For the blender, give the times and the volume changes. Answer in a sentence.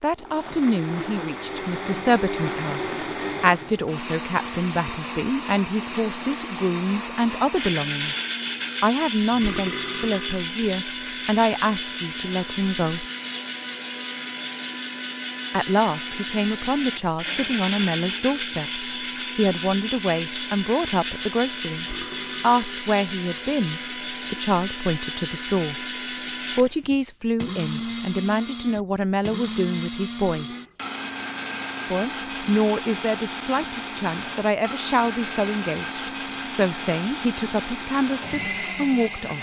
You can hear the blender from 0.1 to 39.3 s, at a steady volume.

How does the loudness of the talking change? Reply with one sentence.
The volume of the talking stays about the same.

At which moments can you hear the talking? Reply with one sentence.
You can hear the talking from 0.0 to 8.2 s, from 8.8 to 13.1 s, from 15.5 to 25.9 s, from 26.5 to 30.5 s and from 31.9 to 39.3 s.